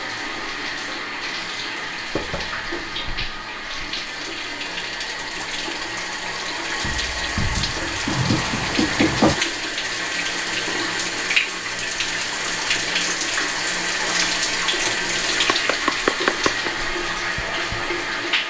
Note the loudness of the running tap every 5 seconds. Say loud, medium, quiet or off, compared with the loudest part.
medium, loud, loud, loud.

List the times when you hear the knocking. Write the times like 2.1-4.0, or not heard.
2.1-2.6, 8.1-9.3, 15.5-16.7.